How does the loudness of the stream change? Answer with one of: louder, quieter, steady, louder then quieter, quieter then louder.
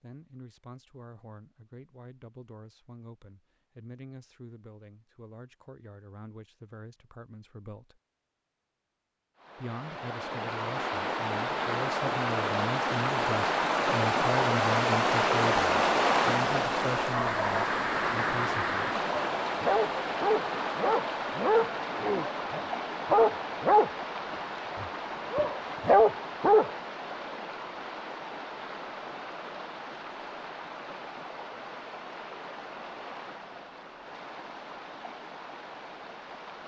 quieter.